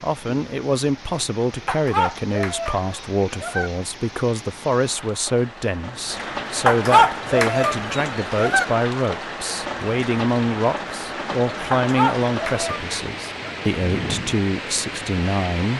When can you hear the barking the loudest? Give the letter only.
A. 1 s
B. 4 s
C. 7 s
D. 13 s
C.